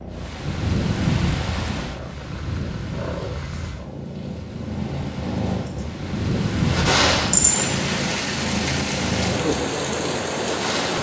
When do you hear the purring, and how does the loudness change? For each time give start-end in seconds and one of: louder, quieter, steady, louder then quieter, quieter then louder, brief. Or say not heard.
0.0-10.9 louder then quieter.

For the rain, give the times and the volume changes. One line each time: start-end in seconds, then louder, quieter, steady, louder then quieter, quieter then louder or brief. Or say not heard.
0.0-10.9 quieter then louder.